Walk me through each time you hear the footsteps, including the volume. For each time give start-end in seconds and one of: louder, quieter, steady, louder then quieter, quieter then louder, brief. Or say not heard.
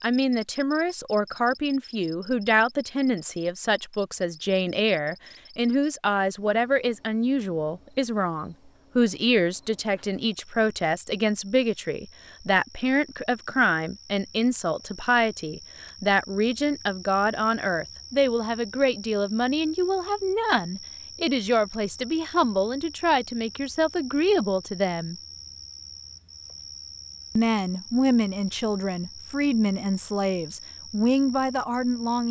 not heard.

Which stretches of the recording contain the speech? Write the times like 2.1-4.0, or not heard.
0.0-25.1, 27.4-32.2.